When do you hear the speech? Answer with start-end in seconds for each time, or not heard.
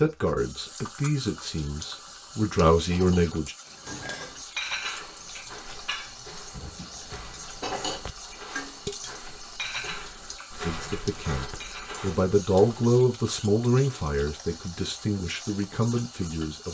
0.0-3.5, 10.7-16.6.